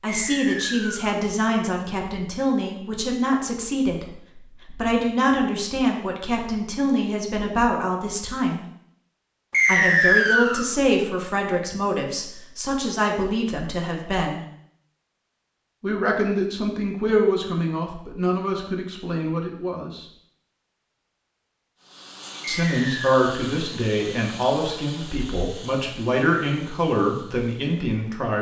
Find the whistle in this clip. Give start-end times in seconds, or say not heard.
0.1-1.2, 9.5-10.7, 22.6-23.5.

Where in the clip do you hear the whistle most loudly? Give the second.
10 s.